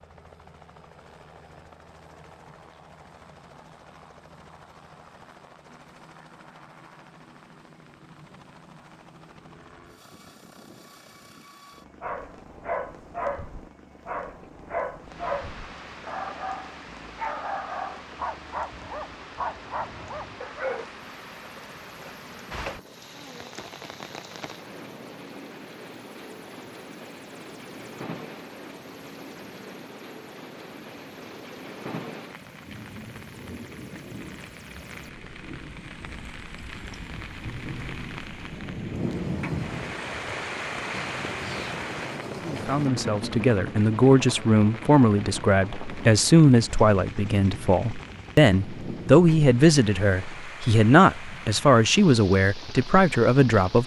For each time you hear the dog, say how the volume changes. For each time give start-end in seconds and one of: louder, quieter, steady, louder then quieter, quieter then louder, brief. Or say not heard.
12.0-20.9 steady.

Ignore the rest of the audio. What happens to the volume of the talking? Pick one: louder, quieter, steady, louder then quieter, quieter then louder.
steady.